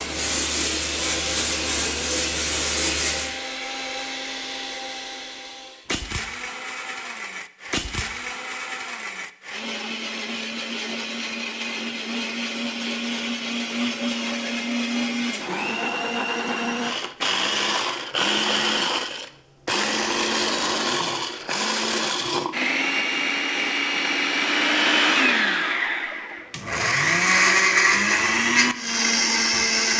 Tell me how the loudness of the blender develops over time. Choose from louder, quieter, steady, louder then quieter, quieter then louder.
louder.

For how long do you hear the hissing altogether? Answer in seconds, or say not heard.
3 s.